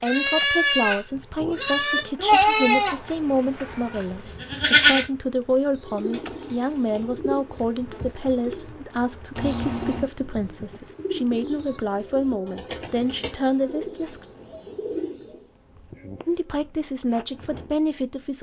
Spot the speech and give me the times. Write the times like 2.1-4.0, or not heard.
0.0-14.2, 16.2-18.3.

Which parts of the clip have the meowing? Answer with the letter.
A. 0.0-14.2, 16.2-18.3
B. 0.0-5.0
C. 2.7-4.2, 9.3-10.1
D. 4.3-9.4
C.